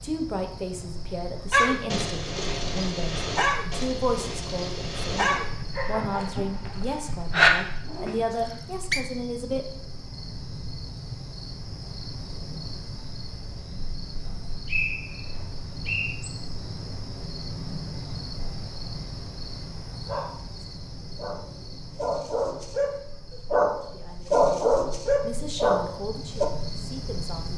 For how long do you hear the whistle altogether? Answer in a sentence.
You can hear the whistle for 3 seconds altogether.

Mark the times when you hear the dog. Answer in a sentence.
The dog can be heard from 1.5 to 8.2 s and from 20.1 to 26.4 s.